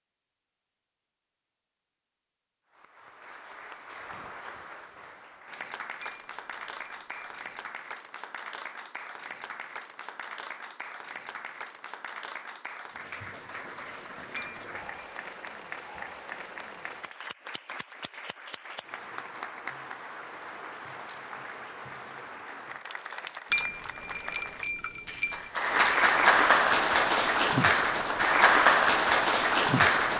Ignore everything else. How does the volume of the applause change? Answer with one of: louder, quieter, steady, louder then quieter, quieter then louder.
louder.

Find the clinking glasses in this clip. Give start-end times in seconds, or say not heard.
6.0-7.3, 14.3-15.2, 23.5-25.5.